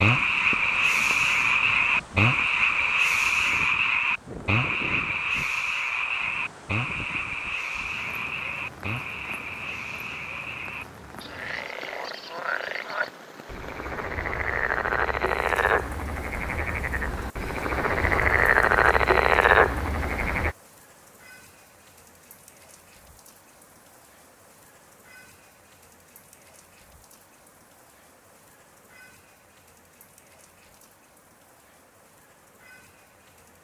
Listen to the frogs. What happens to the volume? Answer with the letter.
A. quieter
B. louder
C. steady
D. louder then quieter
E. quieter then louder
E.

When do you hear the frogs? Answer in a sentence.
You can hear the frogs from 0.0 to 20.6 s.